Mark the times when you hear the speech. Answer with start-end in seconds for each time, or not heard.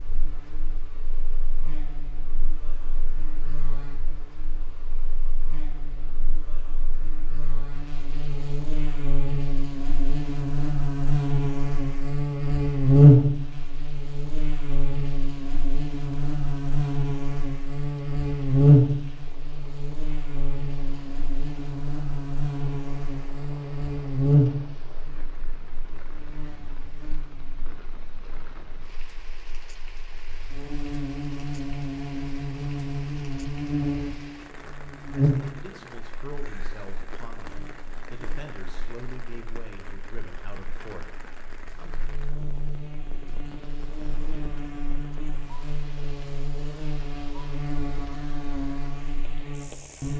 35.1-42.0.